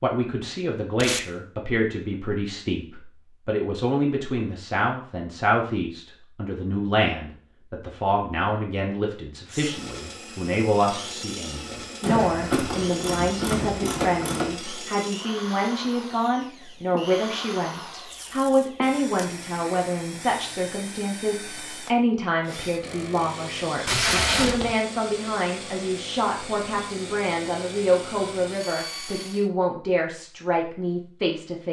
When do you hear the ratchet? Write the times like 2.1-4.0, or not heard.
12.0-14.6.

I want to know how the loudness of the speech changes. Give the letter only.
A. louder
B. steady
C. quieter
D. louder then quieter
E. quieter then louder
B.